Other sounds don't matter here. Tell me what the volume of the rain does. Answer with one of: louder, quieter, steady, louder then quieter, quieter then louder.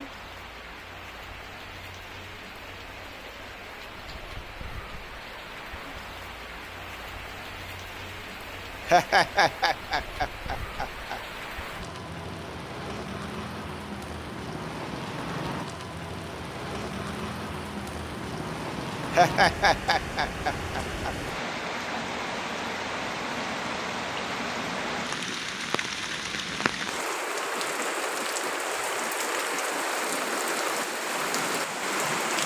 louder.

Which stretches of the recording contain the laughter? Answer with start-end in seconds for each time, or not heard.
8.8-11.2, 19.1-21.1.